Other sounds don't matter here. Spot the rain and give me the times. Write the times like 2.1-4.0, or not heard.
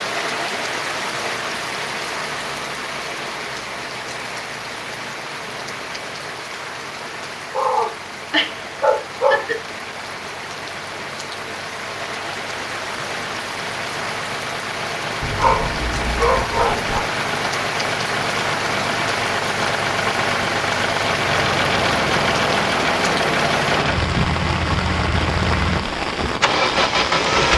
0.0-27.5.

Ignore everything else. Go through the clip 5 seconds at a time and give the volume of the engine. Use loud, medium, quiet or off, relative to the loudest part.
quiet, quiet, quiet, medium, loud, loud.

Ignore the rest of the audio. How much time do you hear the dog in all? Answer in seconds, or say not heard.
4 s.